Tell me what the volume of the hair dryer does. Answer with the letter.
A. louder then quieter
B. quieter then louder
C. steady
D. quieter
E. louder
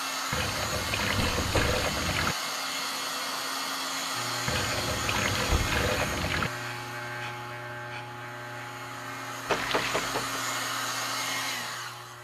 B.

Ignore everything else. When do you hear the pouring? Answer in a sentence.
The pouring can be heard from 0.3 to 2.4 s, from 4.5 to 6.5 s and from 9.4 to 10.1 s.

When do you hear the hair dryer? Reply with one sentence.
You can hear the hair dryer from 0.0 to 12.1 s.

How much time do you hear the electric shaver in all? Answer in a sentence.
You can hear the electric shaver for 8 seconds altogether.